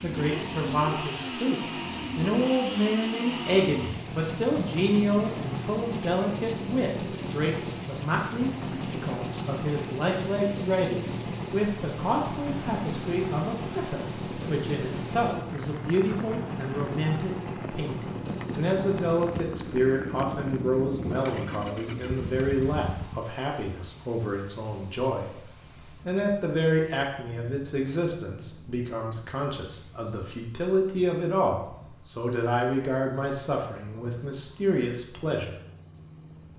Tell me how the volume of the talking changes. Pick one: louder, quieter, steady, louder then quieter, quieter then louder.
steady.